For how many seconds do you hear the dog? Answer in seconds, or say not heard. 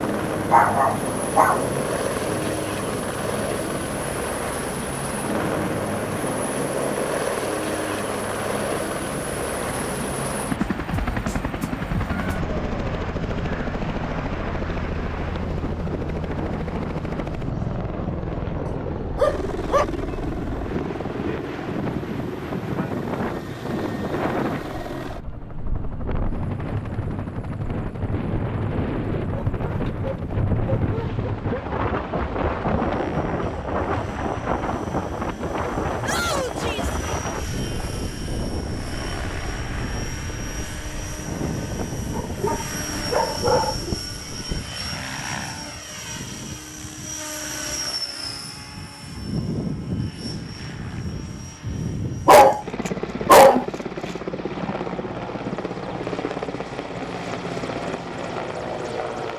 8 s.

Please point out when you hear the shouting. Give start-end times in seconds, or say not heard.
36.0-37.0.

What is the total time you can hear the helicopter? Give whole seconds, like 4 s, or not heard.
59 s.